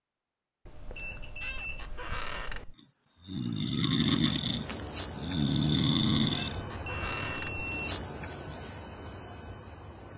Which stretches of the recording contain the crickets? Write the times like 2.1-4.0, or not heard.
3.9-10.1.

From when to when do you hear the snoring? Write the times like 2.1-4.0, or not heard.
3.2-7.2.